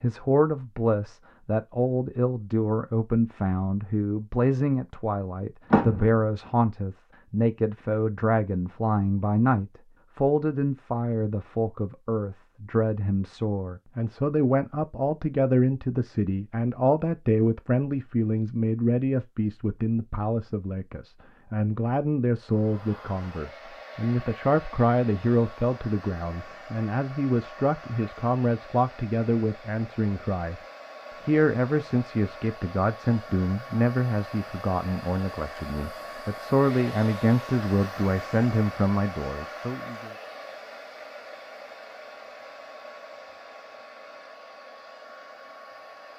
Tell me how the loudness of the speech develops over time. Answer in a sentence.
The loudness of the speech stays about the same.